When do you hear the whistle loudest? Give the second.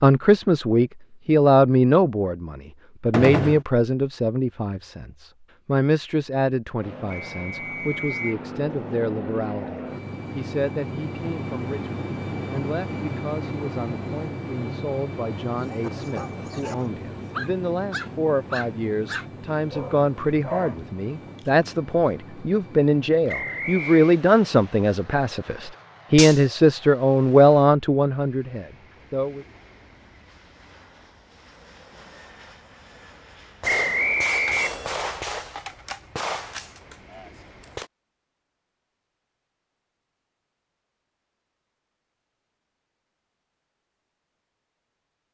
34 s.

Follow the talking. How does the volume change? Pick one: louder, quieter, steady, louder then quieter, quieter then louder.
quieter then louder.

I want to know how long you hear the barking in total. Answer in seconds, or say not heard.
5 s.